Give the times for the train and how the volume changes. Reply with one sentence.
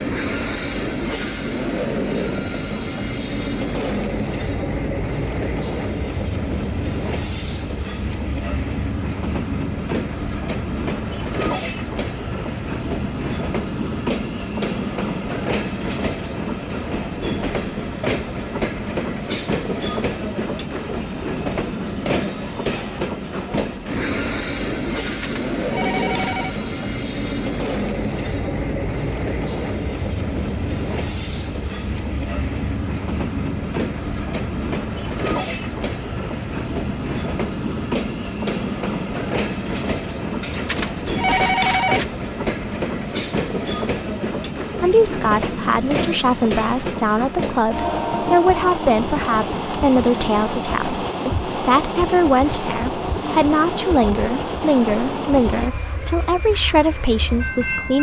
The train can be heard from 0.0 to 57.9 s, at a steady volume.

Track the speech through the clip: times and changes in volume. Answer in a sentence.
You can hear the speech from 44.8 to 57.9 s, at a steady volume.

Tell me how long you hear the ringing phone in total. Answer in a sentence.
The ringing phone can be heard for 3 seconds in total.